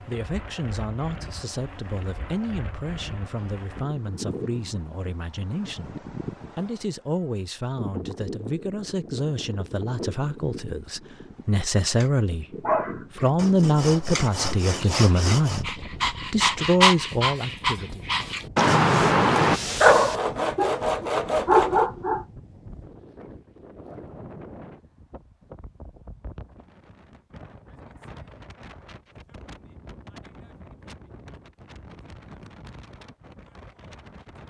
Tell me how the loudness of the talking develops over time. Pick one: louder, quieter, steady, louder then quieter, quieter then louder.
louder.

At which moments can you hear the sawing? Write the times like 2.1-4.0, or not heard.
13.3-15.7, 19.9-21.9.